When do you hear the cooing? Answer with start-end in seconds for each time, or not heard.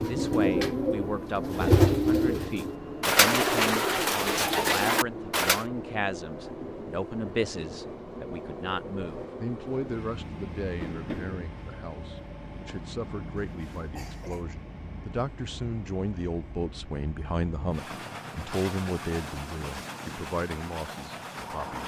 0.0-5.7.